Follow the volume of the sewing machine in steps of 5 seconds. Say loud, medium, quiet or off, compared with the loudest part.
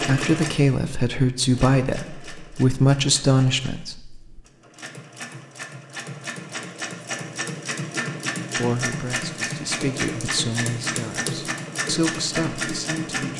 medium, loud, loud.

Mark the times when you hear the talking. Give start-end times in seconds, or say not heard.
0.0-4.3, 8.6-13.3.